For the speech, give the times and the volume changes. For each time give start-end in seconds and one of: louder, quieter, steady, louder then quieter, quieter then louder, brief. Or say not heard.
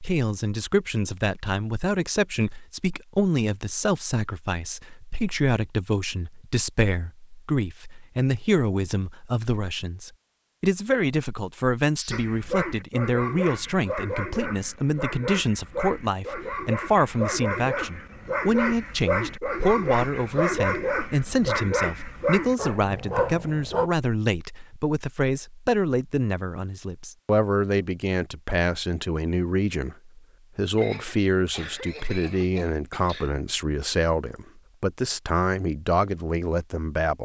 0.0-37.2 steady.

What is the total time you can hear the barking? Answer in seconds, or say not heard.
12 s.